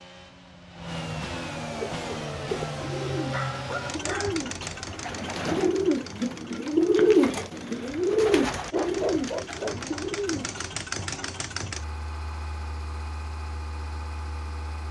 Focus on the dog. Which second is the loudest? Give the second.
9 s.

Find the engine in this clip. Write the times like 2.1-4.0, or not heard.
0.0-14.8.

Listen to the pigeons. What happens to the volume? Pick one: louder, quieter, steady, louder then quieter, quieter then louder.
louder then quieter.